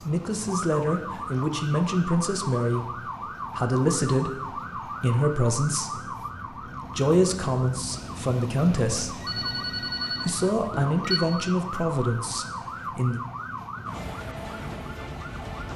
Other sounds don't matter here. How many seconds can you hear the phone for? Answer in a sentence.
You can hear the phone for 2 seconds altogether.